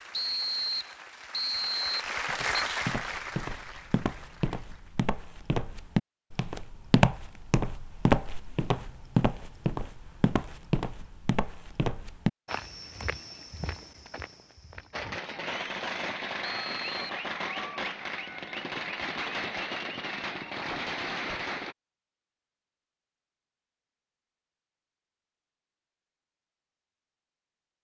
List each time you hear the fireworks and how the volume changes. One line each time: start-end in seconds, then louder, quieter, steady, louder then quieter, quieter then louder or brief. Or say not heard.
14.9-21.8 steady.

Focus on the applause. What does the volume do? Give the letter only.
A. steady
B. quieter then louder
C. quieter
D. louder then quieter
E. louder
D.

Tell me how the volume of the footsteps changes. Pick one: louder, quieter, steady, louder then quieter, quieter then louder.
louder then quieter.